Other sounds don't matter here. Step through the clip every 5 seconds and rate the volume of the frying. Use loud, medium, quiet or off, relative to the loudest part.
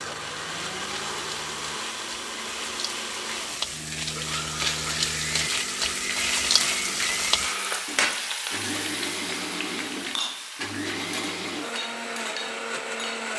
medium, loud, medium.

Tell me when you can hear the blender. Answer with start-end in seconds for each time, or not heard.
0.0-13.3.